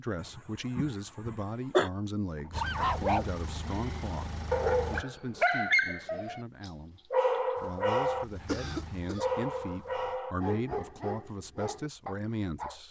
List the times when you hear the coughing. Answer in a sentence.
The coughing can be heard from 0.2 to 1.9 s and from 8.4 to 9.4 s.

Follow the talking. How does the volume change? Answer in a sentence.
The volume of the talking goes down, then up.